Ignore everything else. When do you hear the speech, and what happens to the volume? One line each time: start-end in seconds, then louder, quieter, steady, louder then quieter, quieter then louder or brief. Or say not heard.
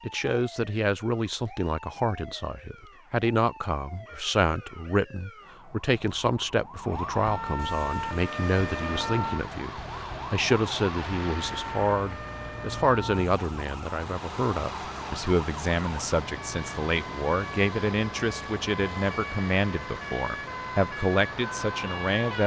0.1-22.4 steady.